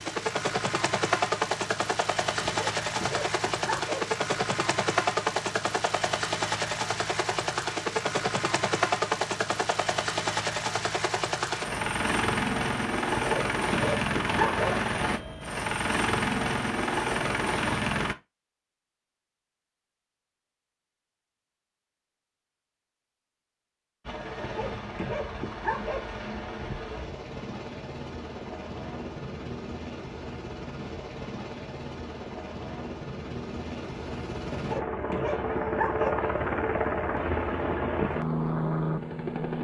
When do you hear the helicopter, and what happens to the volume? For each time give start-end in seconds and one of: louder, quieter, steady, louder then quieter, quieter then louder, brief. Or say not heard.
0.0-18.1 steady
24.1-39.6 louder.